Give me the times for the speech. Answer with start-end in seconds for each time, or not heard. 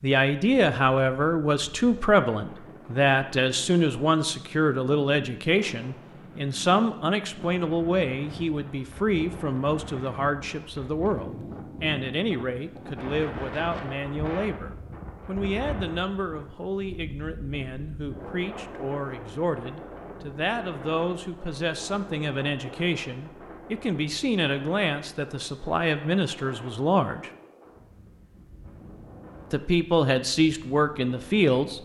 0.0-27.3, 29.5-31.8.